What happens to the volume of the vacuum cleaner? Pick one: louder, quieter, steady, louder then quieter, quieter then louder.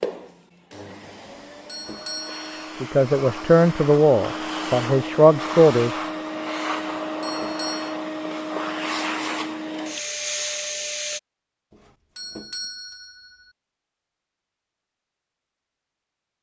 louder.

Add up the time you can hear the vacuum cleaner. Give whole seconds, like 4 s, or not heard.
11 s.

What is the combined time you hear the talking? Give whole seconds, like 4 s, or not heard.
3 s.